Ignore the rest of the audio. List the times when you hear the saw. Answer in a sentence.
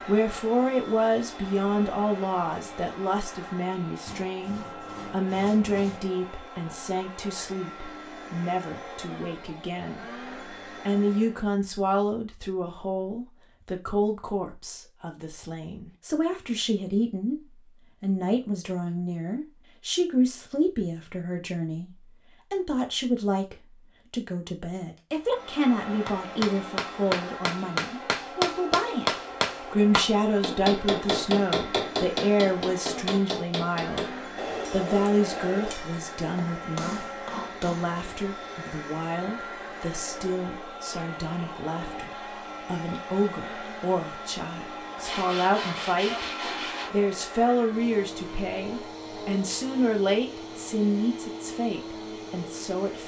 You can hear the saw from 4.0 to 6.0 s and from 45.0 to 46.9 s.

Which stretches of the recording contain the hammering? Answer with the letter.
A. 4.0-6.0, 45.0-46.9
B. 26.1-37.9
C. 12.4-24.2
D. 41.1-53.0
B.